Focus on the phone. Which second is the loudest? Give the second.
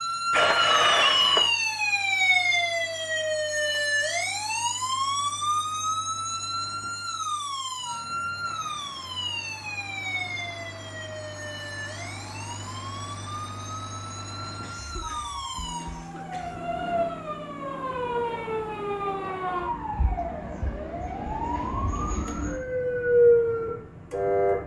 1 s.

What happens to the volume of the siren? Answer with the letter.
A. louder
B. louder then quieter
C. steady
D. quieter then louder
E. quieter
D.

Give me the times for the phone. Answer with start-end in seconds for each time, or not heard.
0.3-1.5, 14.8-16.1.